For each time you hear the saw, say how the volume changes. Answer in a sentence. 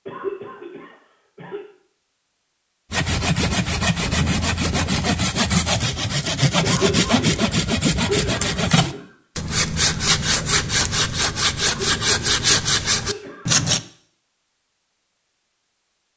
The saw can be heard from 2.9 to 13.8 s, at a steady volume.